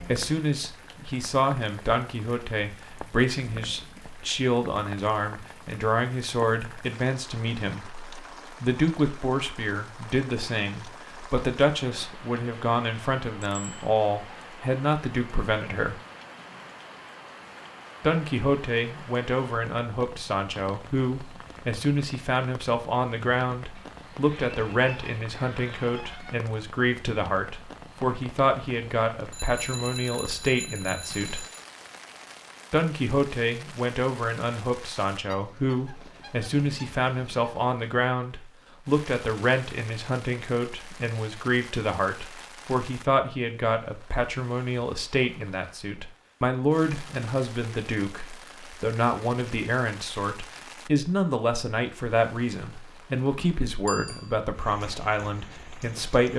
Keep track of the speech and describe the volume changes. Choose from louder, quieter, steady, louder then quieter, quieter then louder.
steady.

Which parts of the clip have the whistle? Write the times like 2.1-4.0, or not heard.
not heard.